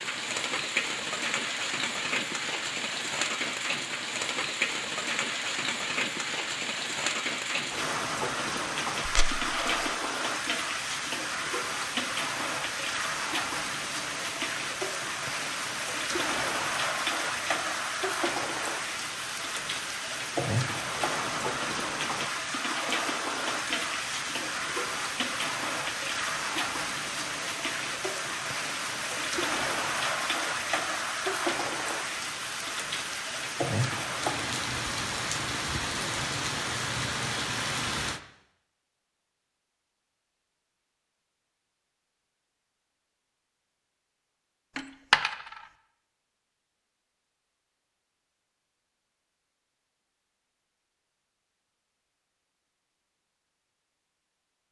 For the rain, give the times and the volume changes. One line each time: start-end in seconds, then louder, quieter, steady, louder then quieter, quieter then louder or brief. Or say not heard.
0.0-38.2 steady.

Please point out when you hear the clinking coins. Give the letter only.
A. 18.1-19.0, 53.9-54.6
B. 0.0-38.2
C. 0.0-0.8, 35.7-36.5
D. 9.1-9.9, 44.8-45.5
D.